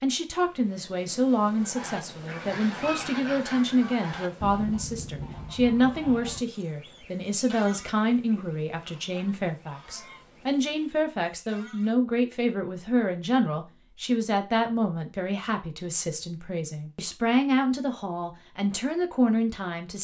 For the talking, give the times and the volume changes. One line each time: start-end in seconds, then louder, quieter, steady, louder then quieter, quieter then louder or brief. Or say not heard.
0.0-19.9 steady.